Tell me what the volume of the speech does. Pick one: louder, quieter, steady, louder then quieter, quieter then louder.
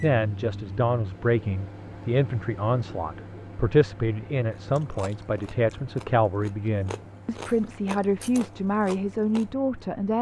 steady.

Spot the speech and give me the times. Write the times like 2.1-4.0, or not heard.
0.0-10.1.